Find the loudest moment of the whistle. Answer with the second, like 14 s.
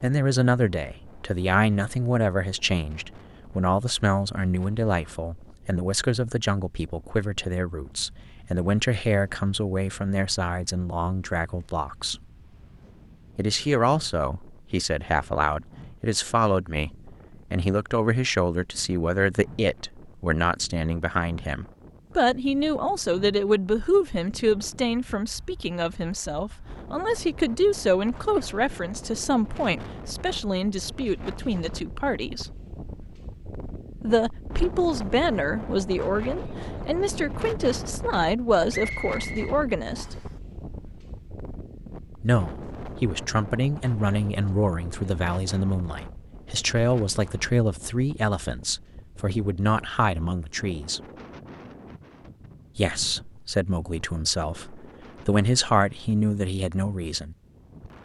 39 s.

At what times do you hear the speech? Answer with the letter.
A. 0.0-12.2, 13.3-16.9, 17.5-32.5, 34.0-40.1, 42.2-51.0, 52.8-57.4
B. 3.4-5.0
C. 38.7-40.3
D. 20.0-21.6
A.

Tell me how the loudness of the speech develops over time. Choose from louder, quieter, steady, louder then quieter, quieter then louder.
steady.